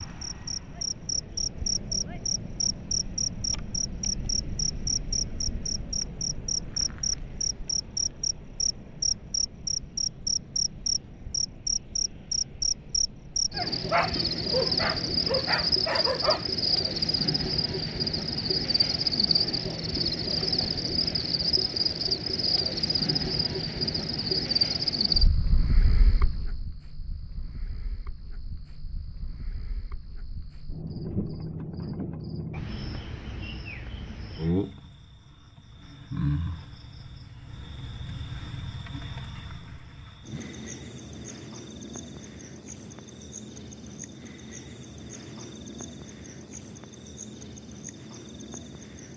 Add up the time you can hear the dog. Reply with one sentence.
You can hear the dog for 3 seconds altogether.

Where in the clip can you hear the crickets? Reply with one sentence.
The crickets can be heard from 0.0 to 49.1 s.